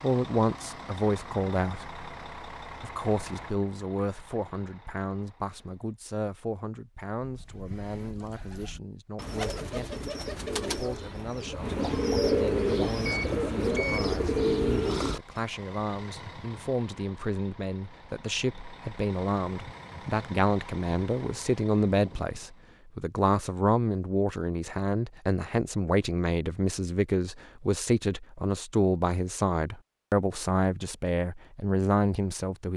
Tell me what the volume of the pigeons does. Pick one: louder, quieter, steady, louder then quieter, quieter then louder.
louder.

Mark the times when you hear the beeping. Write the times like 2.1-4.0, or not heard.
13.1-14.1.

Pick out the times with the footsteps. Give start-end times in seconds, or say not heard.
not heard.